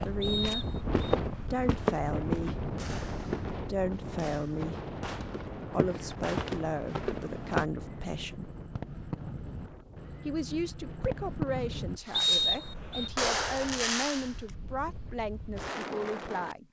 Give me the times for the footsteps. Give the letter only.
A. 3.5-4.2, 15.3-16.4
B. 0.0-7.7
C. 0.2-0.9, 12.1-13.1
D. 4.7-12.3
B.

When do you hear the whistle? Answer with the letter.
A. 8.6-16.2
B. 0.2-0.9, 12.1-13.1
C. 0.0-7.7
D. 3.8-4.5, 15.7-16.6
B.